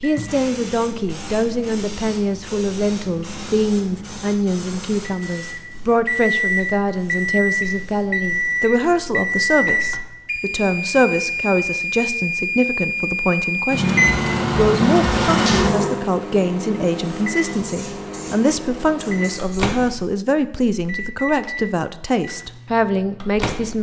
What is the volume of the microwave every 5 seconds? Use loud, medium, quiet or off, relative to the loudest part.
quiet, loud, loud, loud, medium.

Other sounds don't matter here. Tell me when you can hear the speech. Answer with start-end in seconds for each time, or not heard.
0.0-23.7.